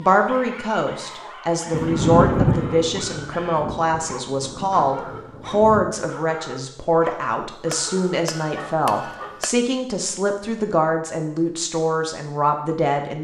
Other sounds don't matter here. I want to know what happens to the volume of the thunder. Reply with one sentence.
The volume of the thunder goes down.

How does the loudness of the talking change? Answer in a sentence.
The loudness of the talking stays about the same.